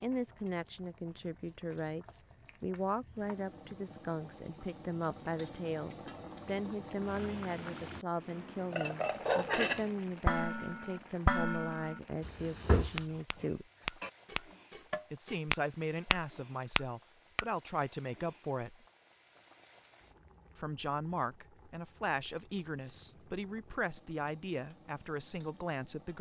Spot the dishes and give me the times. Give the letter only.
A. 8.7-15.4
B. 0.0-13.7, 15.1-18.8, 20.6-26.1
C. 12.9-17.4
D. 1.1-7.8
A.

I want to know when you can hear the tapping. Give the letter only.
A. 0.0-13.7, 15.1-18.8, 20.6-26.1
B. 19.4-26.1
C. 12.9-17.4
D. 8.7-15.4
C.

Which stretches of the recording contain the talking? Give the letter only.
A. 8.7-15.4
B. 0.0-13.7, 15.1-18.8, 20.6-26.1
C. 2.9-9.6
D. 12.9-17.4
B.